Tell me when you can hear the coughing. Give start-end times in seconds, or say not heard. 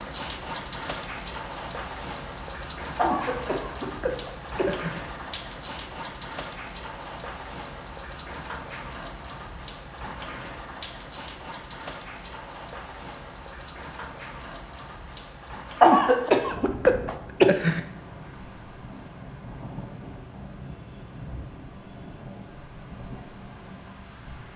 3.0-5.0, 15.8-17.8.